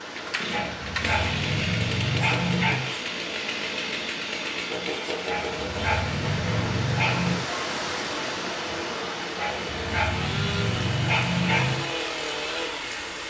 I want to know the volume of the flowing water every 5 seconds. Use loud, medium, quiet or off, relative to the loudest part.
medium, loud, medium.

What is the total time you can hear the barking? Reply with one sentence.
You can hear the barking for 7 seconds altogether.